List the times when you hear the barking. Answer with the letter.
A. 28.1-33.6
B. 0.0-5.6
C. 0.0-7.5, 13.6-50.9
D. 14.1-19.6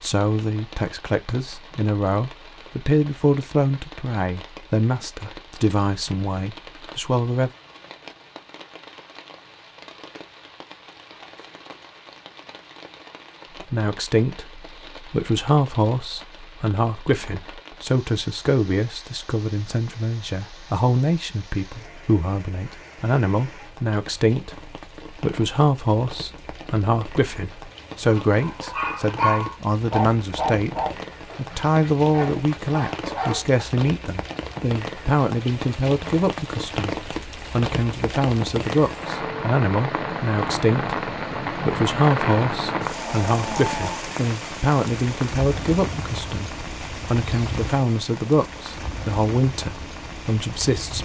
A.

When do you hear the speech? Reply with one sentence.
You can hear the speech from 0.0 to 7.5 s and from 13.6 to 50.9 s.